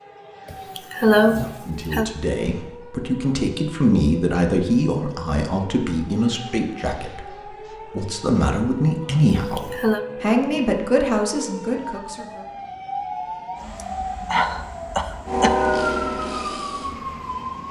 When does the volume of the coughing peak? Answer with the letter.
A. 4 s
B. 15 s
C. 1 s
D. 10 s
C.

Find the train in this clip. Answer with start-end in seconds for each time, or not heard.
15.2-17.6.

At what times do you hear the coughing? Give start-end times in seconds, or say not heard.
0.5-2.1, 9.3-10.0, 14.3-15.5.